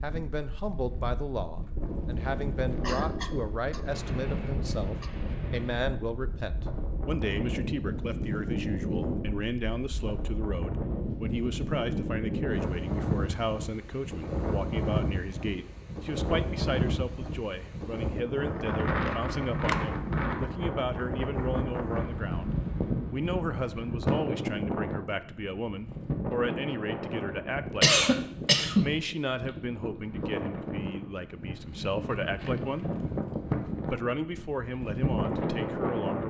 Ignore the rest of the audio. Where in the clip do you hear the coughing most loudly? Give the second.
28 s.